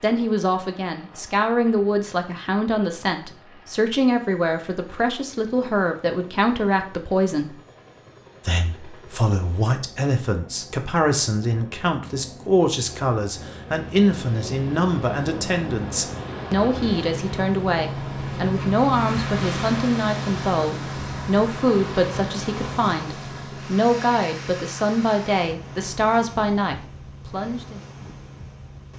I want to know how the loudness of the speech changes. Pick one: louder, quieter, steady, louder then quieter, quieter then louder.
steady.